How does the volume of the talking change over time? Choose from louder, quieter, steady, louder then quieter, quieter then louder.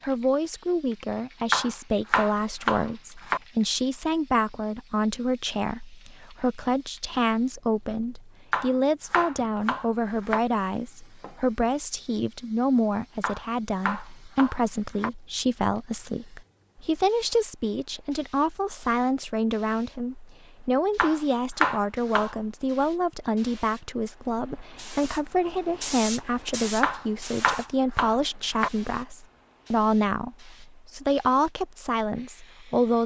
steady.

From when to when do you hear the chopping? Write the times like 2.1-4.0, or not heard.
1.5-3.4, 8.5-10.4, 13.2-15.1, 20.9-22.4, 26.8-28.7.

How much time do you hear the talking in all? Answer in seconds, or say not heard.
33 s.